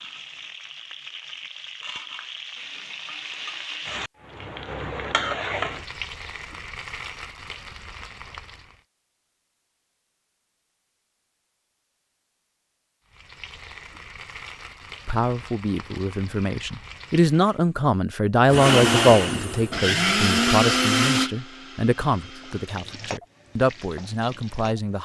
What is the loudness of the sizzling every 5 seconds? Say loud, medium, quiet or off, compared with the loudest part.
loud, loud, medium, medium, medium.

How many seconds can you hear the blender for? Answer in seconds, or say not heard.
4 s.